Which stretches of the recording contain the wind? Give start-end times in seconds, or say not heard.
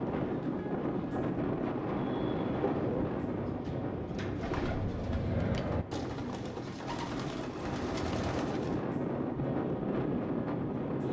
0.0-11.0.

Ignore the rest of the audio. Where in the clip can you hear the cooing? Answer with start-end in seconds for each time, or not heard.
2.1-8.8.